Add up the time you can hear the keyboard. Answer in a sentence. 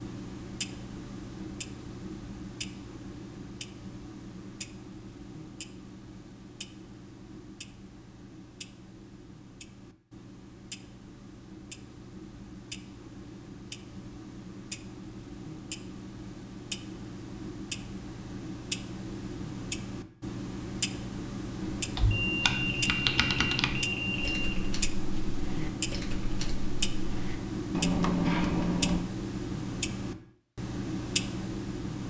The keyboard can be heard for 7 seconds in total.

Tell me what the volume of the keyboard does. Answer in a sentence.
The volume of the keyboard goes down, then up.